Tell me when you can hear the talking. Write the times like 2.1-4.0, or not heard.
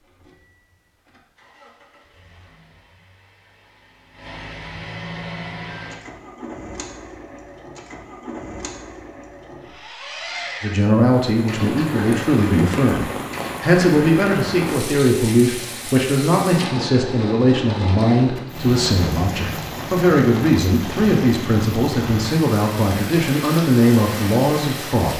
10.6-25.1.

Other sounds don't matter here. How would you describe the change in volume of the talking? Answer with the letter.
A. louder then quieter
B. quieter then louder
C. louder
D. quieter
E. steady
E.